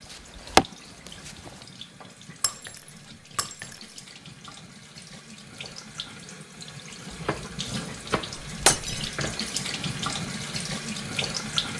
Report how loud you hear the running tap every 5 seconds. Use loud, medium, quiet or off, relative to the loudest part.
quiet, medium, loud.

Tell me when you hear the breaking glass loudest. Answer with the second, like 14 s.
9 s.